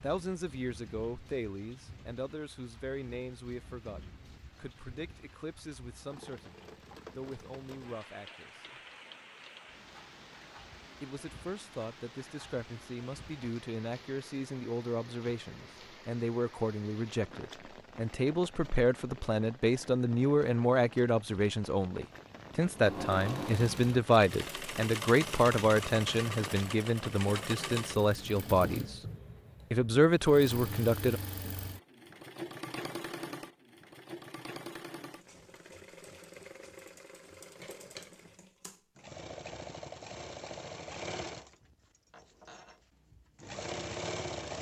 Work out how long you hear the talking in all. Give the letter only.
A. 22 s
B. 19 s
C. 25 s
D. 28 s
D.